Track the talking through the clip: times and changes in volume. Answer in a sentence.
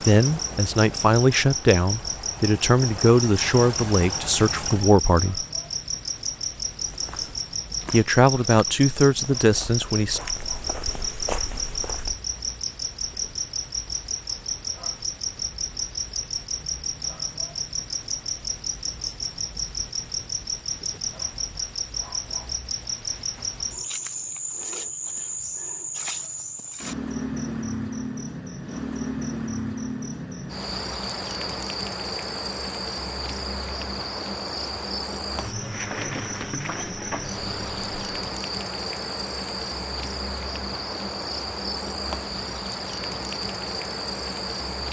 You can hear the talking from 0.1 to 5.5 s, at a steady volume; and briefly from 7.9 to 10.2 s.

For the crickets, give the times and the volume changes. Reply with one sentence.
The crickets can be heard from 0.0 to 44.8 s, at a steady volume.